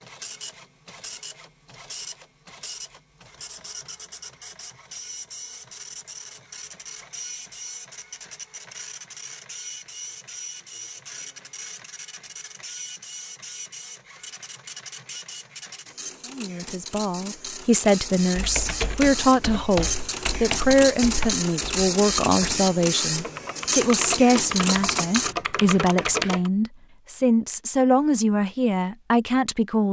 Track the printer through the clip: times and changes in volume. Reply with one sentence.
You can hear the printer from 0.0 to 25.4 s, getting louder.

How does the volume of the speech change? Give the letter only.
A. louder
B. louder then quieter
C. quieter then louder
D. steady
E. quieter
D.